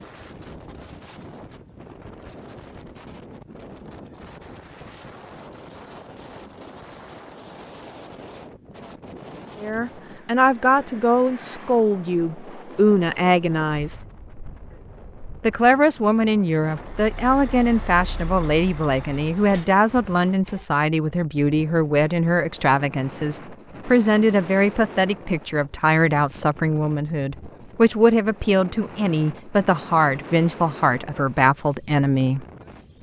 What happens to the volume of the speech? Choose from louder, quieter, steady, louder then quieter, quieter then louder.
steady.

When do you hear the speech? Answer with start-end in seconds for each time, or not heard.
9.6-14.0, 15.4-32.5.